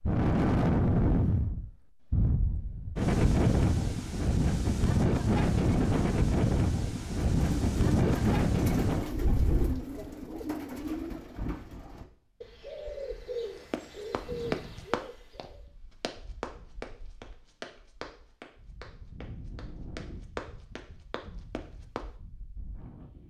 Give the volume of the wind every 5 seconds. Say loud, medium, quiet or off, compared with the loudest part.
loud, loud, quiet, quiet, quiet.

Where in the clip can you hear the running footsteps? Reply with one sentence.
You can hear the running footsteps from 13.7 to 22.1 s.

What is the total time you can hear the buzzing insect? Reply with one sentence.
The buzzing insect can't be heard in this clip.